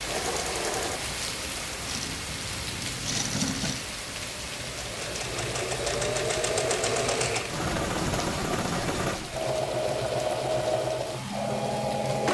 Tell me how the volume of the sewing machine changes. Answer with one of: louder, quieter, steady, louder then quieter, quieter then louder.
louder.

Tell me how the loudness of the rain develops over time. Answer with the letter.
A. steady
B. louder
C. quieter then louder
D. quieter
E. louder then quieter
D.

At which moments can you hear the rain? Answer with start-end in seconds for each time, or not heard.
0.0-12.2.